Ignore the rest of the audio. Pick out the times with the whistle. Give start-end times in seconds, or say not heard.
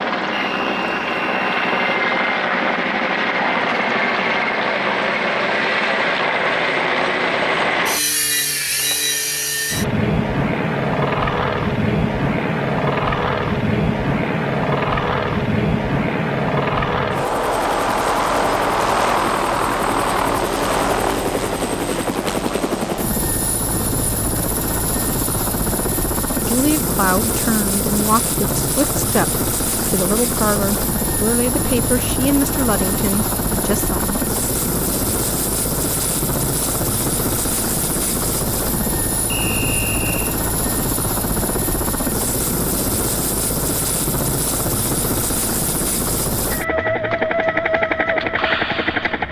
0.3-2.0, 39.3-40.4.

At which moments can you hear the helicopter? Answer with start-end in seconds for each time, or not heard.
0.0-49.2.